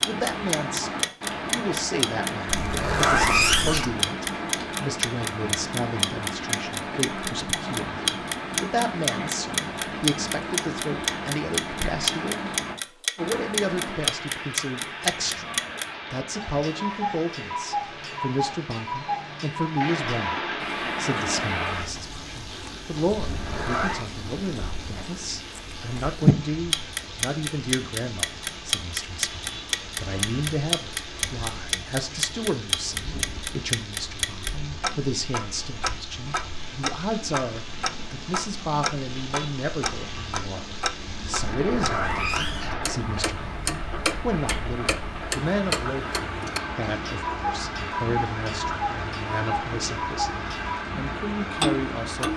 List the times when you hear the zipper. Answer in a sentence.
You can hear the zipper from 2.5 to 4.0 s, from 23.2 to 24.1 s and from 41.5 to 42.8 s.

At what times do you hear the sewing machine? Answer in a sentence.
You can't hear the sewing machine here.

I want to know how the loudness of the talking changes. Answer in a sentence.
The volume of the talking stays about the same.